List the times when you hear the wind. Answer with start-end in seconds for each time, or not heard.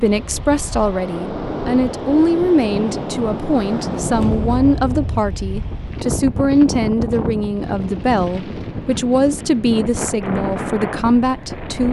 0.0-11.8.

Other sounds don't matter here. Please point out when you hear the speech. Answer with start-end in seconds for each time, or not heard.
0.0-11.8.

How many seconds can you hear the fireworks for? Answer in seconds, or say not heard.
not heard.